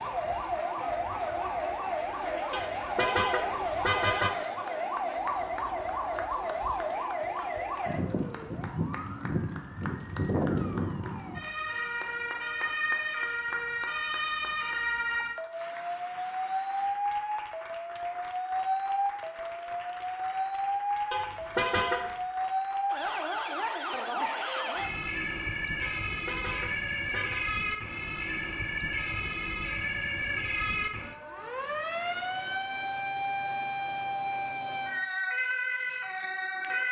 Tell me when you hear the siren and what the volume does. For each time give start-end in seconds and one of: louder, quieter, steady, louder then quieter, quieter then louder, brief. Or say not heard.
0.0-36.8 steady.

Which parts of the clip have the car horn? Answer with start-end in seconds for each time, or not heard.
2.5-4.3, 21.1-22.1, 25.8-27.6.